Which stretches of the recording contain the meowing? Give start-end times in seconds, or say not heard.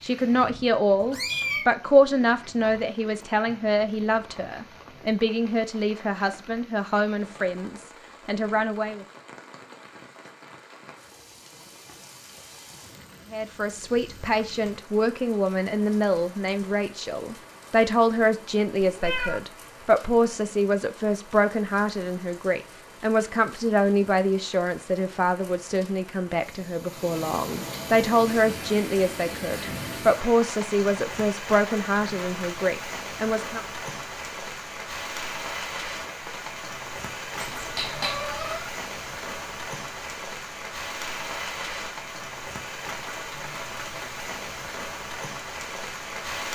0.9-1.6, 18.8-19.4, 37.4-38.7.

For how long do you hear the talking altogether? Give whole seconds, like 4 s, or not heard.
29 s.